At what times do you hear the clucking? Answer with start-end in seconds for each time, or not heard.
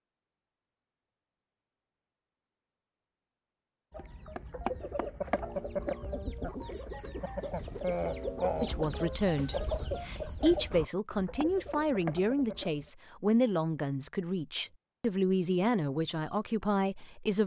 3.9-12.9.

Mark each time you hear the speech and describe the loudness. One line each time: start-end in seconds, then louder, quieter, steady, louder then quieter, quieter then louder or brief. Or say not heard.
8.6-17.4 steady.